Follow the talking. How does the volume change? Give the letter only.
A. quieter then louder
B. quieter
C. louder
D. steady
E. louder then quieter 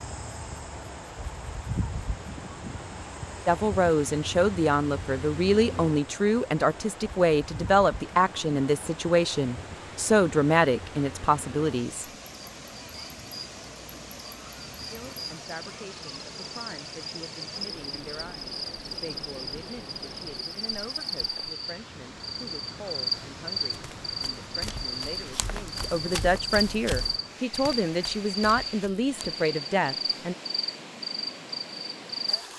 A.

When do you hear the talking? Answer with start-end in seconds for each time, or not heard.
3.5-12.1, 14.9-30.4.